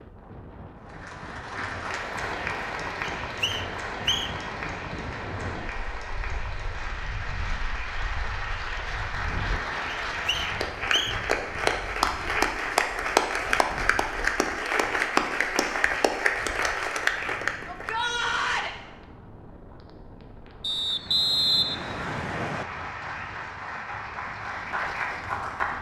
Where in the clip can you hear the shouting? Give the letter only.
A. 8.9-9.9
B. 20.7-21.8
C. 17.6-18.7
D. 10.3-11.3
C.